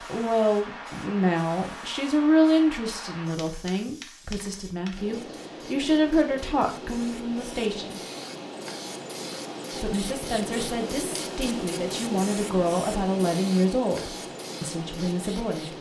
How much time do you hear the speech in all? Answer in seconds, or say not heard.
14 s.